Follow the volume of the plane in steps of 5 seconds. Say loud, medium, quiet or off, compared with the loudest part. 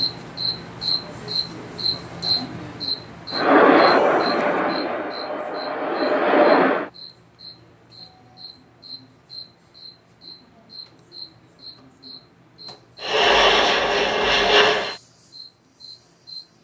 loud, loud, loud, off.